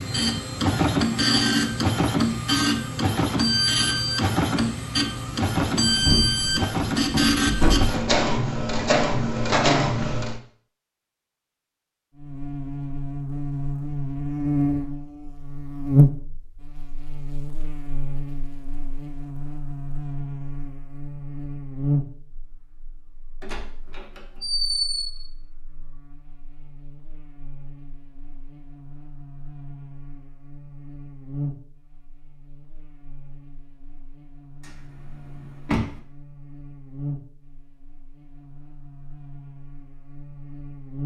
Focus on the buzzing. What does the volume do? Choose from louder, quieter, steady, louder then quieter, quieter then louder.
quieter then louder.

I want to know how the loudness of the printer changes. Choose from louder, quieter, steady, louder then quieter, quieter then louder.
steady.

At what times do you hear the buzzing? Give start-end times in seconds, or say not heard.
12.2-41.0.